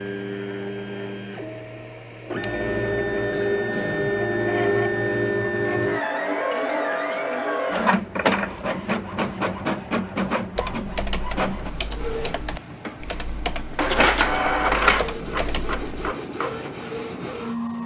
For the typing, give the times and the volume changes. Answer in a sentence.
The typing can be heard from 10.6 to 16.1 s, at a steady volume.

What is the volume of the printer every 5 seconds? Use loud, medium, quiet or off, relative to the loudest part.
loud, loud, loud, medium.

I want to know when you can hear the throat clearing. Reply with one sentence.
The throat clearing can be heard from 3.3 to 4.2 s, from 6.5 to 7.2 s and from 13.9 to 14.3 s.